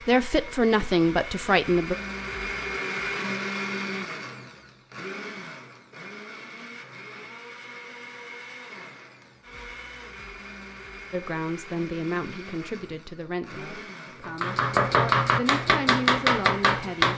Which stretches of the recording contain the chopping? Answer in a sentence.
You can hear the chopping from 14.2 to 17.1 s.